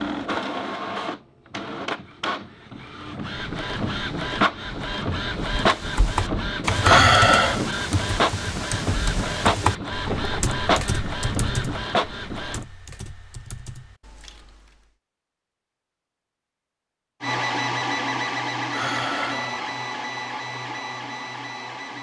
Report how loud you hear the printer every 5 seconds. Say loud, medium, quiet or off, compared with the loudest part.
loud, loud, loud, loud, medium.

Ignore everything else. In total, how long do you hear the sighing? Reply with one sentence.
The sighing can be heard for 2 seconds in total.